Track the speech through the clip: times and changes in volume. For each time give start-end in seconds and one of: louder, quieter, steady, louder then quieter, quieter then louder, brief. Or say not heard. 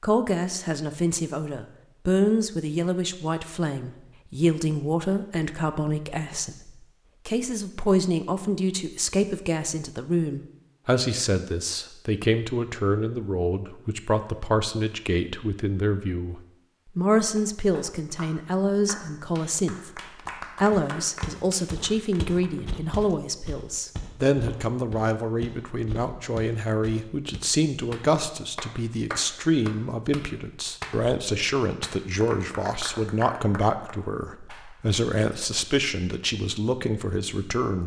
0.0-37.8 steady.